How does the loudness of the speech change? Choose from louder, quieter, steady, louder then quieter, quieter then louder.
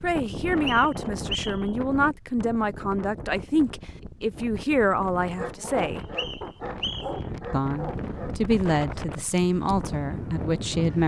steady.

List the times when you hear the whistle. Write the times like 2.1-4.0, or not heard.
0.5-1.7, 6.0-7.2.